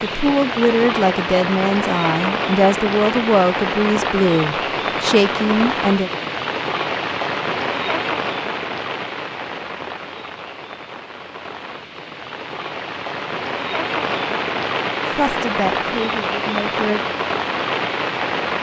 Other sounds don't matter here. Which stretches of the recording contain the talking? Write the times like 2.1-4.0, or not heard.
0.0-6.1, 15.1-17.0.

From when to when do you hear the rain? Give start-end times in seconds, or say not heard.
0.0-18.5.